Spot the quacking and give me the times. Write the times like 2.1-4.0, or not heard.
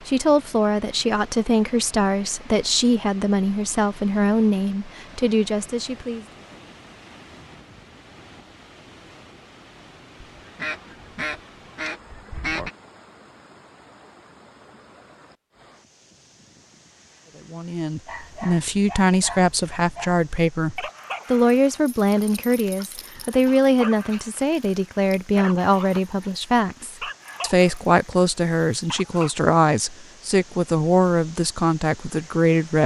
10.2-12.7.